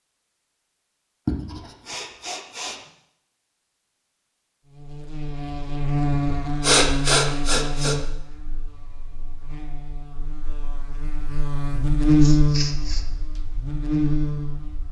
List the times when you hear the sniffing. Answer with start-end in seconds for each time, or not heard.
1.2-2.8, 6.6-8.0, 12.2-13.1.